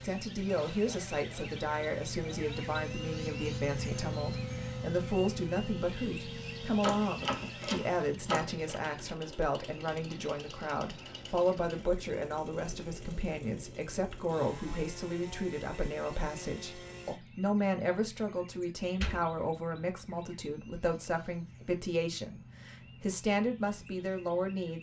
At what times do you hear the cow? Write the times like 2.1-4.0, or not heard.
not heard.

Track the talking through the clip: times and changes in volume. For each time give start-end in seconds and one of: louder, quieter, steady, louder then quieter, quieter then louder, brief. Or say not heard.
0.0-24.7 steady.